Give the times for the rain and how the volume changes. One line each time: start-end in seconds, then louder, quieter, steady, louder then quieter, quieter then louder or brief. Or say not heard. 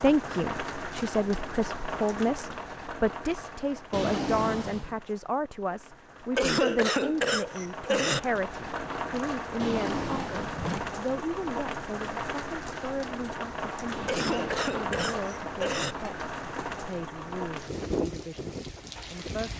0.0-19.5 quieter then louder.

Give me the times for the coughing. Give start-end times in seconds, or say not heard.
6.3-8.2, 14.1-15.9.